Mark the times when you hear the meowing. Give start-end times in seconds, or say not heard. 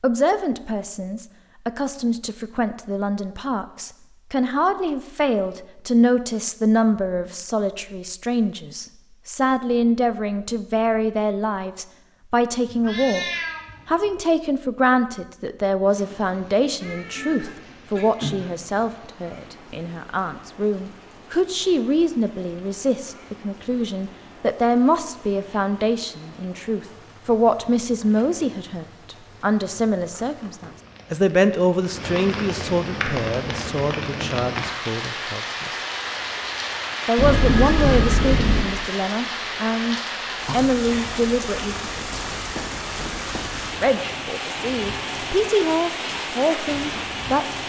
12.7-14.2, 16.8-18.6, 37.1-38.6.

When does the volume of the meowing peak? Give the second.
38 s.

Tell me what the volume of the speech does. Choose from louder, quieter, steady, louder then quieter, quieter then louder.
steady.